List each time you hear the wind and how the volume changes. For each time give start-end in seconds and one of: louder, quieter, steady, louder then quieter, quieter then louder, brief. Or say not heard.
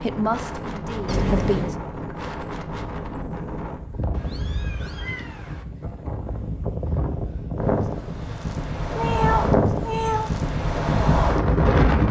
0.0-12.0 louder.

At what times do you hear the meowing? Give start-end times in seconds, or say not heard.
1.1-1.8, 4.1-5.7, 8.9-10.3.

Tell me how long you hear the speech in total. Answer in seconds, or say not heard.
2 s.